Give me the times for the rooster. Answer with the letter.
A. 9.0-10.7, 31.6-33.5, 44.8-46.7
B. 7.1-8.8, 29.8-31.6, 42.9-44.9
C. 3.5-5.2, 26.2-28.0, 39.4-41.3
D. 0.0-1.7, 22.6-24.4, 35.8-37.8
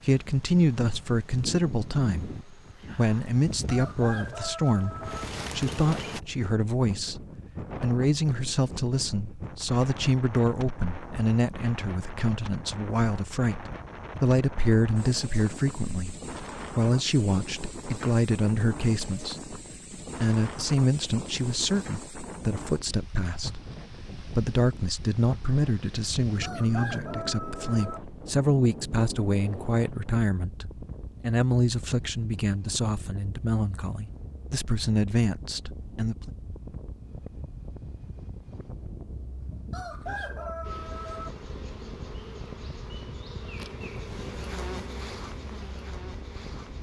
C.